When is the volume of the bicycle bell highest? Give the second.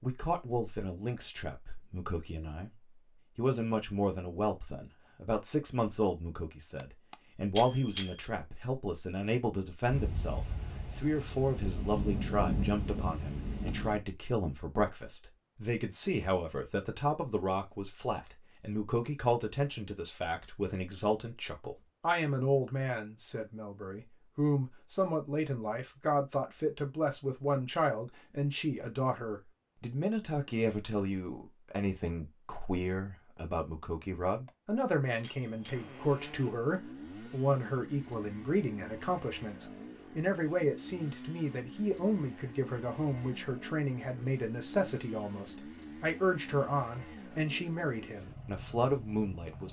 8 s.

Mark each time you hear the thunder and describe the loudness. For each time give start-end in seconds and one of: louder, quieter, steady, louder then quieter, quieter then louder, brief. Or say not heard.
9.9-14.0 louder then quieter.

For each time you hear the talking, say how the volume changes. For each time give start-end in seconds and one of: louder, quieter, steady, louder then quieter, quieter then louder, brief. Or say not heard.
0.0-2.8 brief
3.4-49.6 steady.